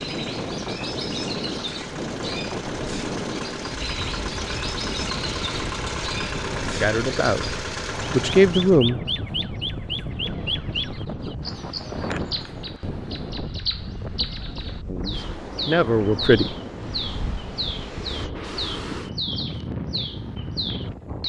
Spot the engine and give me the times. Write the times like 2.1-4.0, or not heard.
0.0-8.8.